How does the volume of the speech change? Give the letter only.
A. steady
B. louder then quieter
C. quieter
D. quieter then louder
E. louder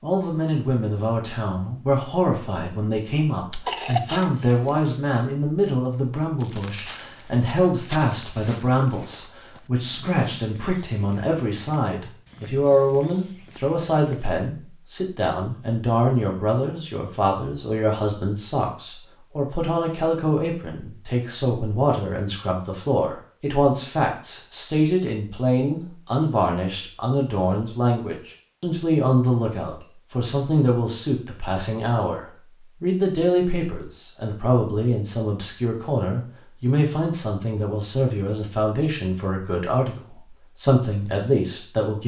A.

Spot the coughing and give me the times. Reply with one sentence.
You can hear the coughing from 3.5 to 4.8 s.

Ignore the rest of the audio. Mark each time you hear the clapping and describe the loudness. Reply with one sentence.
The clapping can't be heard in this clip.